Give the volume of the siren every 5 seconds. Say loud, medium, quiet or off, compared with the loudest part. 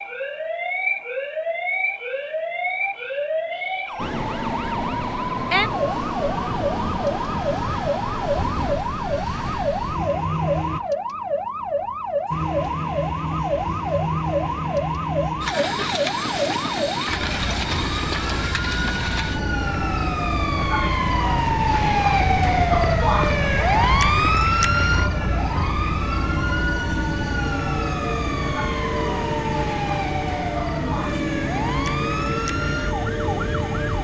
medium, medium, medium, medium, loud, medium, medium.